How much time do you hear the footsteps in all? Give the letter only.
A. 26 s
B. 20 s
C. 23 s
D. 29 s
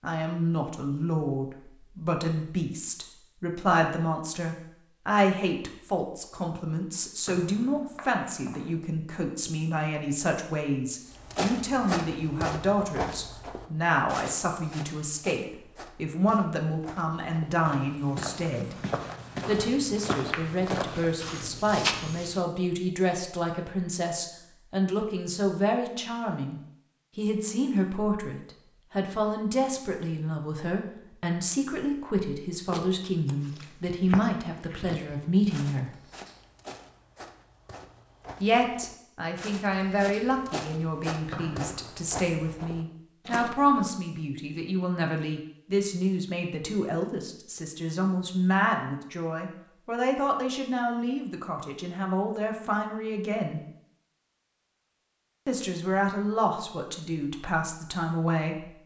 C.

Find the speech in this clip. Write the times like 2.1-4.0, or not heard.
0.0-18.8, 19.4-36.0, 38.4-53.6, 55.5-58.6.